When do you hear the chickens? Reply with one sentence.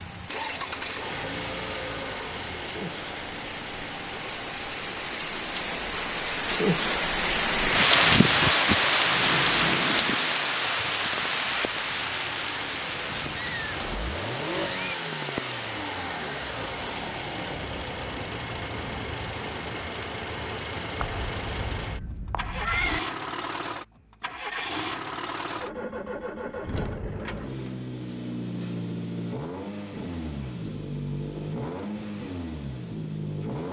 The chickens can't be heard in this clip.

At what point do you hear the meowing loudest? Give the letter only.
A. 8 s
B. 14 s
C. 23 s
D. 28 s
C.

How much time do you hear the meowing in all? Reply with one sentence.
The meowing can be heard for 4 seconds in total.